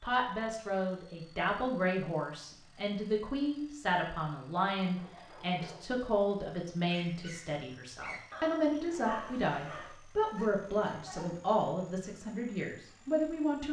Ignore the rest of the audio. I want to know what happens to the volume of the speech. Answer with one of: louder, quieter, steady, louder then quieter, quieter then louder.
steady.